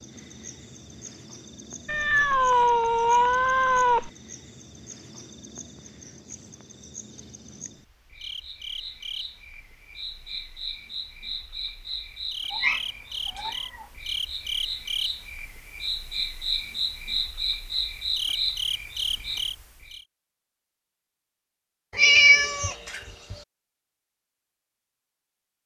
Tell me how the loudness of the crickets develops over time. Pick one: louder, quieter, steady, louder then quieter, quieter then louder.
louder.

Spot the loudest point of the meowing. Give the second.
22 s.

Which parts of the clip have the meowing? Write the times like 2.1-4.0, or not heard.
1.9-4.1, 12.5-13.8, 21.9-23.4.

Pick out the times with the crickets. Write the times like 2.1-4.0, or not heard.
0.0-20.1.